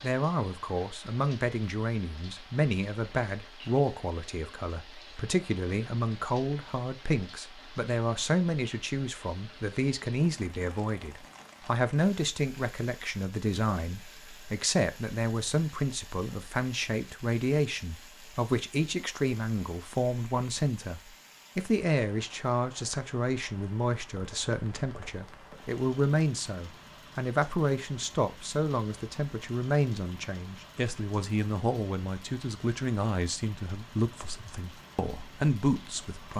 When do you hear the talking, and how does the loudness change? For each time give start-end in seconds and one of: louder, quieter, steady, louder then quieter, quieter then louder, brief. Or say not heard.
0.0-36.3 steady.